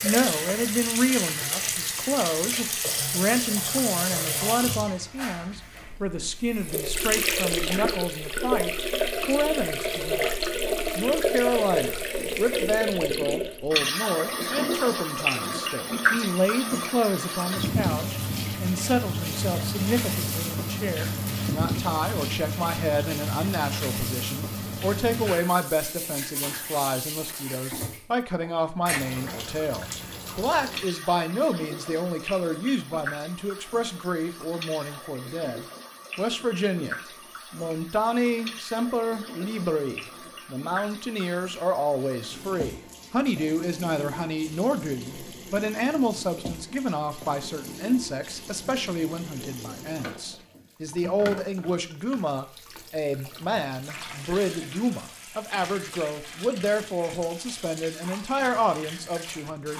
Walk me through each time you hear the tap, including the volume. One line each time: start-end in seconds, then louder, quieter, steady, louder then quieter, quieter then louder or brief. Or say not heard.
0.0-59.7 quieter.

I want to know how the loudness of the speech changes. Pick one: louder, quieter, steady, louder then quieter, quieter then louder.
steady.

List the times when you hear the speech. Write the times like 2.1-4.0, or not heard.
0.0-59.7.